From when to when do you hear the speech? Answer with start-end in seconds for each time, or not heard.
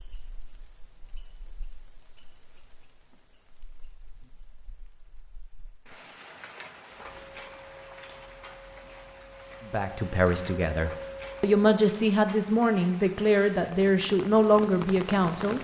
9.7-15.5.